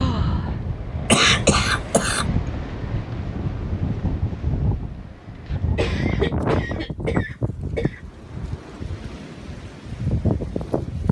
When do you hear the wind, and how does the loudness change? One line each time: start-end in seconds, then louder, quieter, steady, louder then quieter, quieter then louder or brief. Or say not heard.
0.0-11.0 steady.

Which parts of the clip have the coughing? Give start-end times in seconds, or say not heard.
1.1-2.2, 5.8-8.0.